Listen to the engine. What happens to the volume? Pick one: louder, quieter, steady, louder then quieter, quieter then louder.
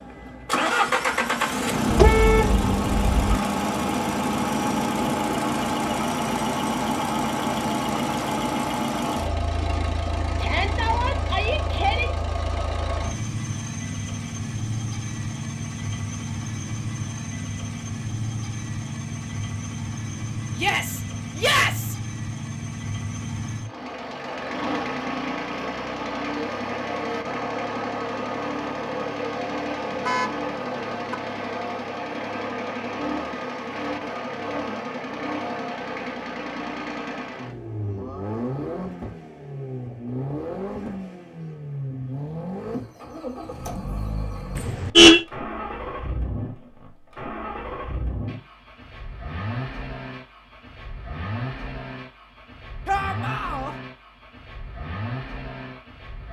quieter.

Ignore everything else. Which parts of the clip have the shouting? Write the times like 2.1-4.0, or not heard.
10.4-12.2, 20.6-21.9, 52.9-53.8.